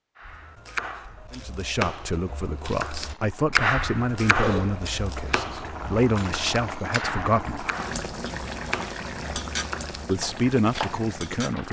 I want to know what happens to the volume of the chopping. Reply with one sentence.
The loudness of the chopping goes up, then down.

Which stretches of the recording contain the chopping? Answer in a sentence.
The chopping can be heard from 0.1 to 11.1 s.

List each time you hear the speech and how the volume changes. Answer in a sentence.
The speech can be heard from 1.3 to 7.7 s, at a steady volume; and briefly from 10.1 to 11.6 s.